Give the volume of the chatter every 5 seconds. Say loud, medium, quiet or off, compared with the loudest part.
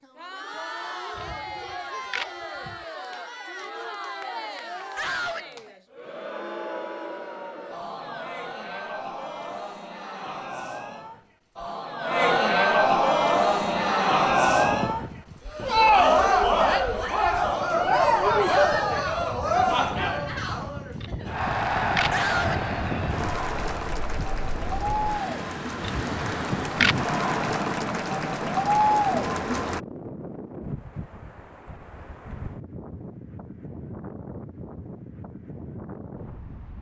quiet, quiet, loud, loud, medium, medium, off, off.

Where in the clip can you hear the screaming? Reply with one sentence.
The screaming can be heard from 5.0 to 5.5 s and from 22.1 to 22.6 s.